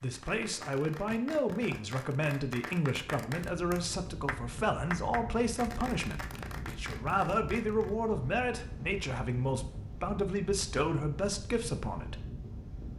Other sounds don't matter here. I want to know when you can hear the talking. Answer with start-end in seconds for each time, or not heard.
0.0-12.2.